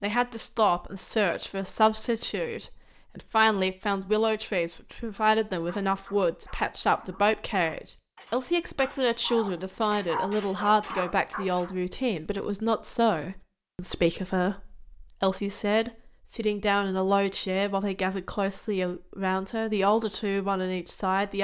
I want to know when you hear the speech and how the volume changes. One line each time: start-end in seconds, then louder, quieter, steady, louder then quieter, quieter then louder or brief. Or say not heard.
0.0-21.4 steady.